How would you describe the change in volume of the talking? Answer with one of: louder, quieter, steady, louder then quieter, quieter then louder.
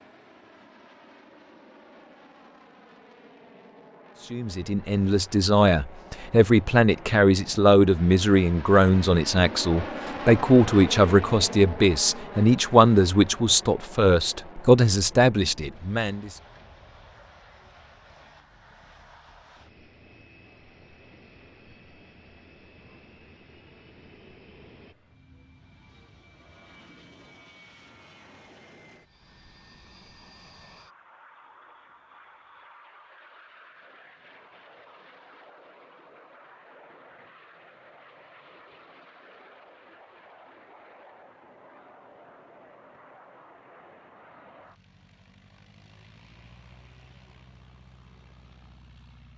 steady.